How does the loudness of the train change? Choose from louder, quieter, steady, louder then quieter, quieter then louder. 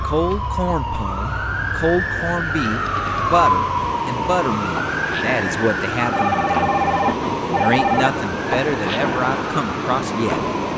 louder.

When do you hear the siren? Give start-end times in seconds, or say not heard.
0.0-10.7.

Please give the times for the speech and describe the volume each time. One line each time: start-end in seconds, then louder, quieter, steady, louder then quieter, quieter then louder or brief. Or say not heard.
0.0-10.4 steady.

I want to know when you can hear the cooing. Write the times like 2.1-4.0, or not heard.
not heard.